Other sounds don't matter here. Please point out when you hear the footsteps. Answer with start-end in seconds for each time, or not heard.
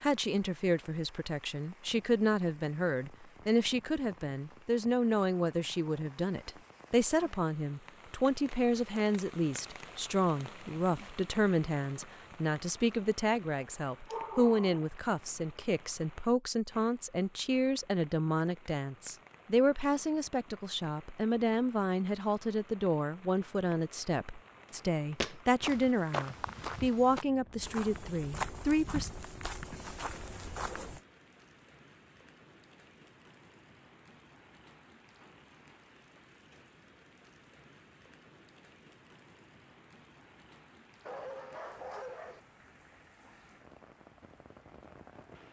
25.1-31.0.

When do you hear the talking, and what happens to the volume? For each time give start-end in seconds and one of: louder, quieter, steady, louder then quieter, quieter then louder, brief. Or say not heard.
0.0-29.1 steady.